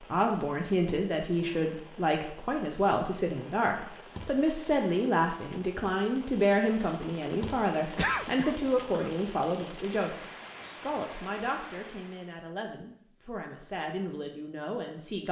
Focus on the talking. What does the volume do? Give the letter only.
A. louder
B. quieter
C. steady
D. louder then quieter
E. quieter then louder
B.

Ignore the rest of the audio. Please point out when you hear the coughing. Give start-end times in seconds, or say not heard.
8.0-9.1.